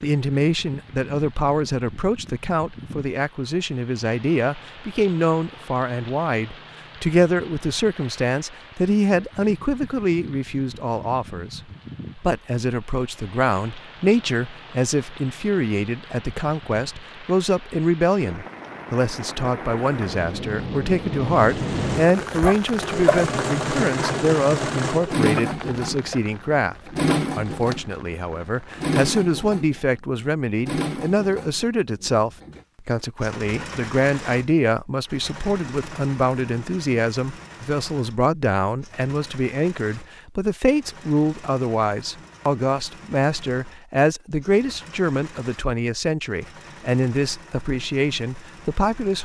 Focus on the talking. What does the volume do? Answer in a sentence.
The volume of the talking stays about the same.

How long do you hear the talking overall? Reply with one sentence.
You can hear the talking for 49 seconds altogether.